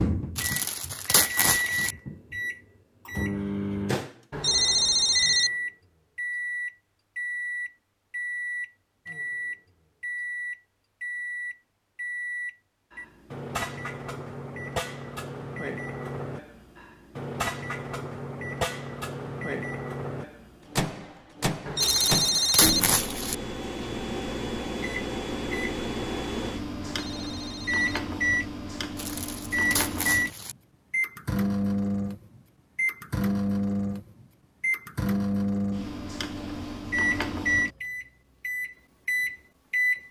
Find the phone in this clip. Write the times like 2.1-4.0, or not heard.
4.3-5.5, 21.6-22.8, 26.8-28.0.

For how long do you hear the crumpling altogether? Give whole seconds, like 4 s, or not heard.
5 s.